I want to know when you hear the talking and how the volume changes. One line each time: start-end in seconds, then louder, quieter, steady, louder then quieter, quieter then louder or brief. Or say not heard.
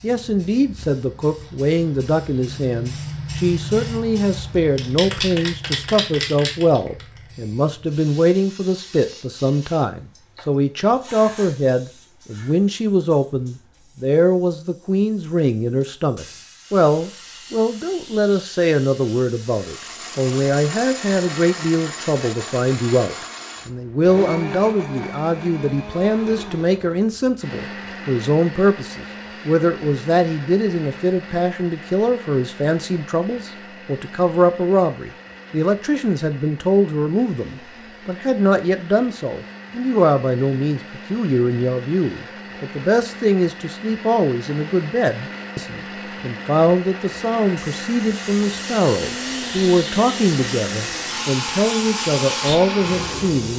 0.0-53.5 steady.